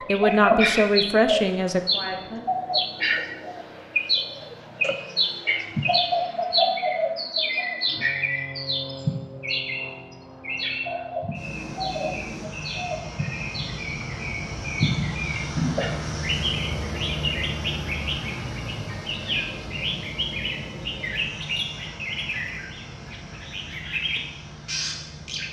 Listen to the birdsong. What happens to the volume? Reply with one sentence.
The loudness of the birdsong goes down.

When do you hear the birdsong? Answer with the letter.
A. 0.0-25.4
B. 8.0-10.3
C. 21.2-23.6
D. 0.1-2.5
A.